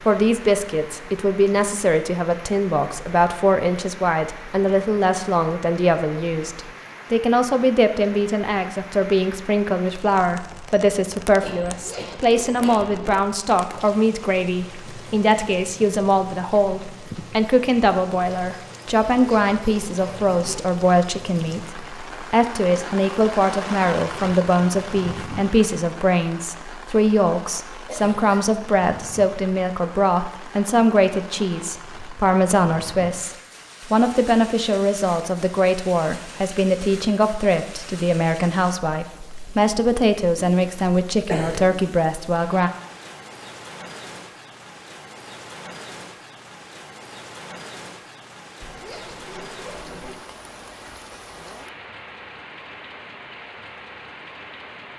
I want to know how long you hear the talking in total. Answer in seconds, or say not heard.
43 s.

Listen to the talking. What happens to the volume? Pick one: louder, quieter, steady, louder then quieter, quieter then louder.
steady.